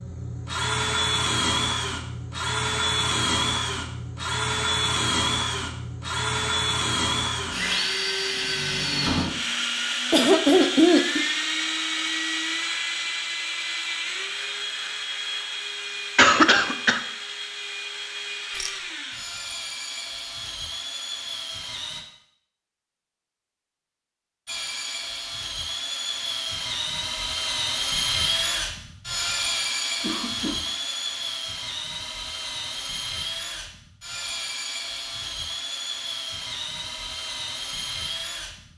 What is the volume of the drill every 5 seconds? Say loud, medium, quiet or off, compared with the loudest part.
loud, loud, loud, medium, medium, loud, medium, medium.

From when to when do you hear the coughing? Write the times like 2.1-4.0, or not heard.
10.1-11.2, 16.1-17.0, 30.0-30.6.